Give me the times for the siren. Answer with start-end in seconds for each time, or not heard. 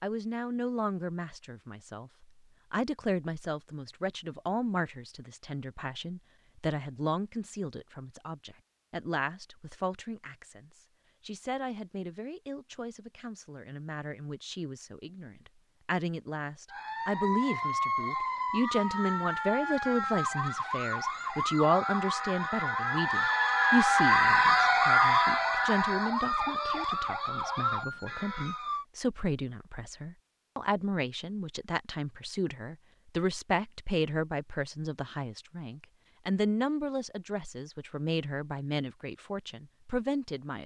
16.7-28.9.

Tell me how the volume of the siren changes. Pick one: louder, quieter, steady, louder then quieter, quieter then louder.
louder then quieter.